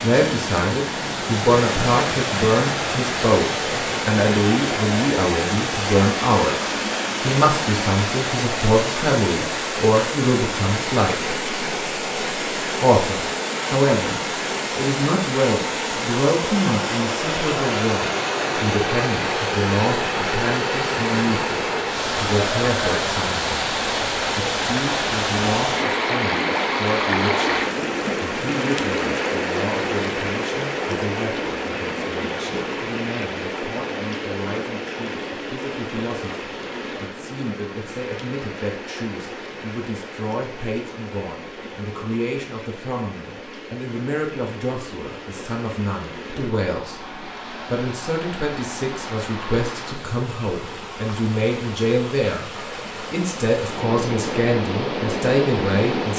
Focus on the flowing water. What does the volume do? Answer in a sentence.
The loudness of the flowing water goes down.